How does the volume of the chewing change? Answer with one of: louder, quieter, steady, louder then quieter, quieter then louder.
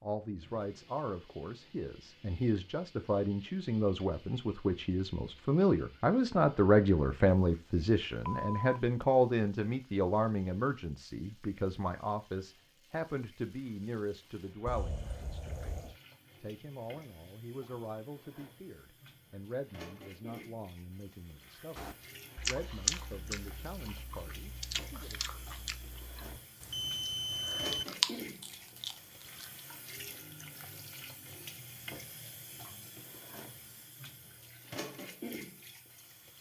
quieter then louder.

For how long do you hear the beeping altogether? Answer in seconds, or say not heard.
3 s.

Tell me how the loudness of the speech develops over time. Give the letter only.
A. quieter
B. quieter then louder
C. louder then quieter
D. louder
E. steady
C.